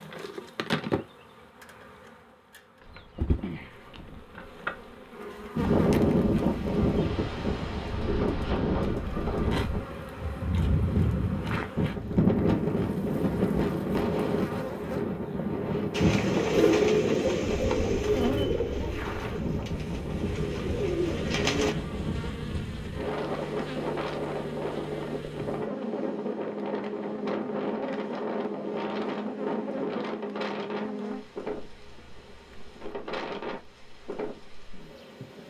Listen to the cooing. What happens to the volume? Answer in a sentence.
The loudness of the cooing goes down, then up.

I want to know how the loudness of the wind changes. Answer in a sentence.
The volume of the wind goes down.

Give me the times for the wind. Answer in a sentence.
The wind can be heard from 5.5 to 35.4 s.